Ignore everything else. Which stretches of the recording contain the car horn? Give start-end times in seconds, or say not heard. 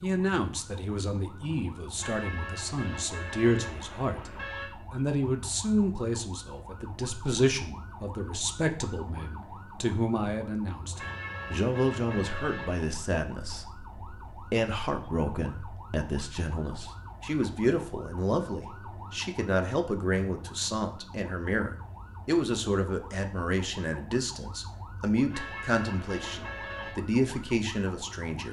1.9-4.7, 10.9-12.9, 25.3-26.9.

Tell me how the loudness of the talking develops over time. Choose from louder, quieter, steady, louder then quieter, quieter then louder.
steady.